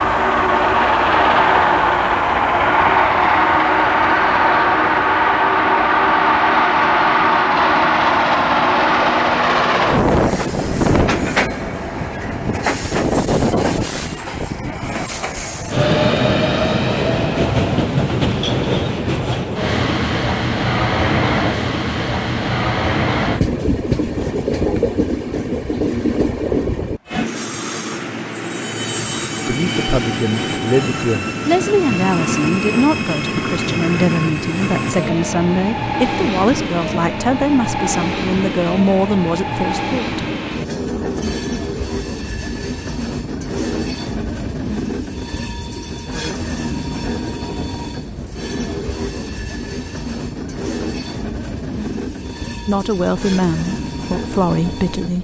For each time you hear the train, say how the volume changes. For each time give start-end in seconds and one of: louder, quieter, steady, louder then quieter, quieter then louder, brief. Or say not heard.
0.0-55.1 quieter.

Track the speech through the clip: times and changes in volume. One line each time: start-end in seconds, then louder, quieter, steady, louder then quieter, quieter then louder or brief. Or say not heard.
29.4-40.2 steady
52.6-55.1 brief.